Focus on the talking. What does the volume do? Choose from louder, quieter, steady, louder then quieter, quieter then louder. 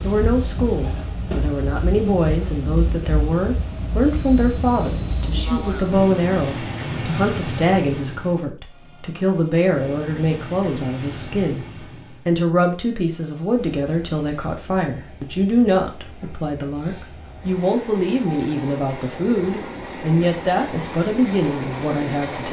steady.